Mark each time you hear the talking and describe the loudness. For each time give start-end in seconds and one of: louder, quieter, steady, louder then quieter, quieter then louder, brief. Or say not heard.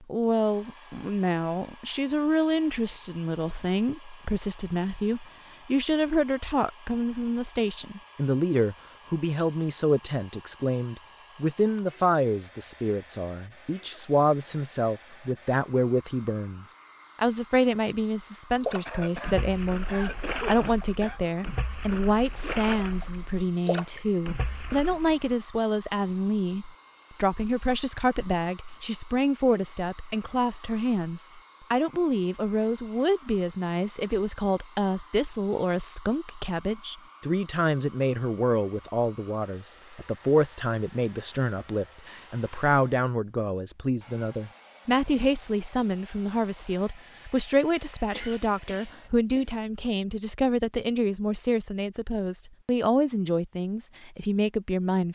0.1-55.1 steady.